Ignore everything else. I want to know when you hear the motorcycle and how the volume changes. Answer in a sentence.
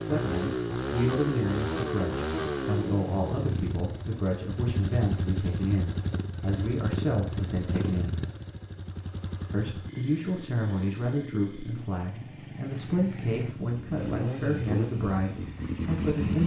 The motorcycle can be heard from 0.0 to 16.4 s, getting quieter then louder.